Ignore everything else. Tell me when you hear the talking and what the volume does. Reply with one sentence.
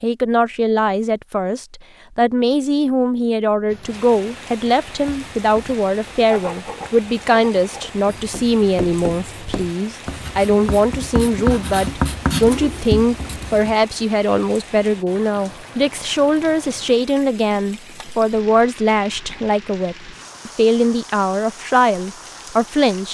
The talking can be heard from 0.0 to 23.0 s, at a steady volume.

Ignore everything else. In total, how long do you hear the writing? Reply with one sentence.
You can hear the writing for 9 seconds altogether.